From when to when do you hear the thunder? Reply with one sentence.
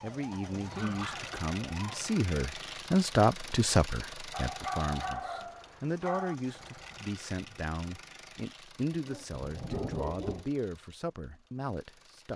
You can hear the thunder from 9.3 to 10.4 s.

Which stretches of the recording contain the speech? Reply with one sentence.
You can hear the speech from 0.0 to 12.3 s.